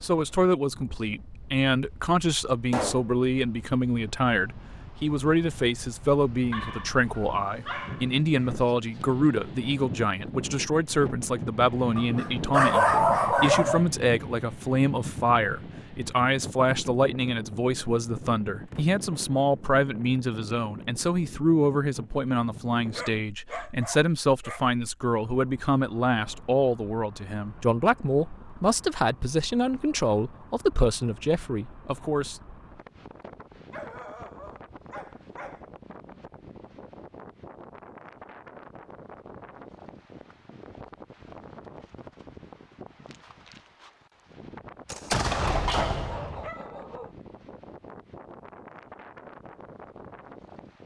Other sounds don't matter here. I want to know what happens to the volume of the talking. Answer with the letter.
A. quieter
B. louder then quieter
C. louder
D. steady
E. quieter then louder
D.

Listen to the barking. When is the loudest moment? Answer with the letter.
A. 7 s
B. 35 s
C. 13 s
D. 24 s
C.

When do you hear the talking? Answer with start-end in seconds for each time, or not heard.
0.0-32.4.